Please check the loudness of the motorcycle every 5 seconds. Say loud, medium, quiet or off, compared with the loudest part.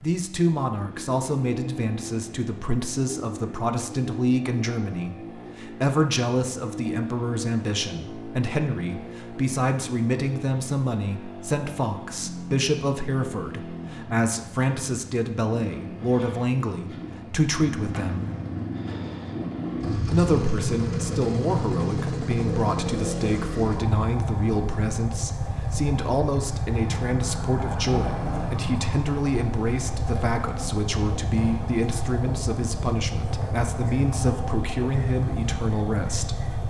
medium, medium, medium, medium, loud, loud, loud, loud.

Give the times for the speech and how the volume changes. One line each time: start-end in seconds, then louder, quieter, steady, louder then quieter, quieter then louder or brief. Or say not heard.
0.0-18.3 steady
20.1-36.4 steady.